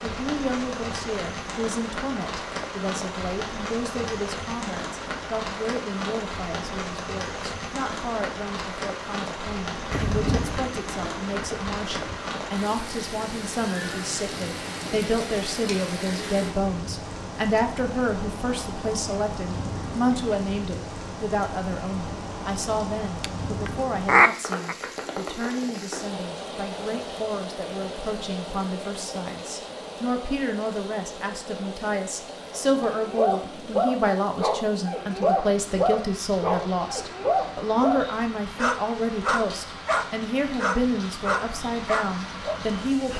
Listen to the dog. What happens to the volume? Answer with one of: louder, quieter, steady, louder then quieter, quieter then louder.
steady.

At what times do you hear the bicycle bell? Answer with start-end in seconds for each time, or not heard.
not heard.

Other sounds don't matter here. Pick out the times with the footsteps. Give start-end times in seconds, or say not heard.
not heard.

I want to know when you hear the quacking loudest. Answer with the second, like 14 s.
24 s.